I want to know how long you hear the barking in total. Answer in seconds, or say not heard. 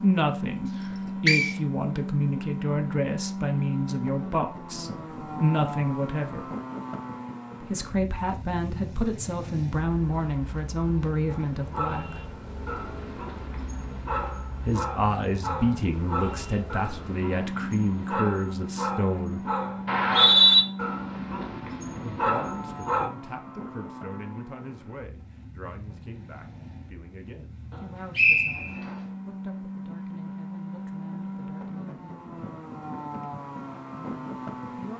12 s.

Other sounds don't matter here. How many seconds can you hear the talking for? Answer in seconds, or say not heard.
27 s.